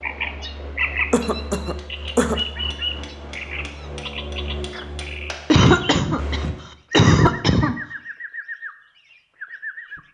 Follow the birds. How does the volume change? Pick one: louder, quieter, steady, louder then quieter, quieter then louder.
quieter.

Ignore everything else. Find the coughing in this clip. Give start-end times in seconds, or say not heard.
1.1-2.4, 5.5-7.8.